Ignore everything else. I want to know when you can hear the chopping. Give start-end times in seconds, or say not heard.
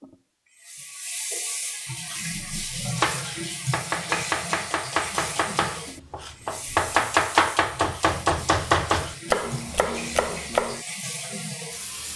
2.3-10.8.